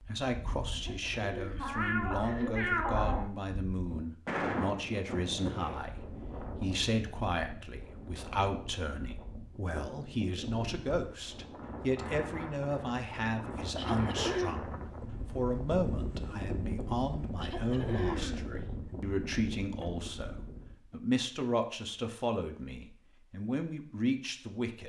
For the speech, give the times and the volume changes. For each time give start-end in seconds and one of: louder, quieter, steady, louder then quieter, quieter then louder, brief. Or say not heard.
0.0-24.8 steady.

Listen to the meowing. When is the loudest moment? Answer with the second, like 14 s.
3 s.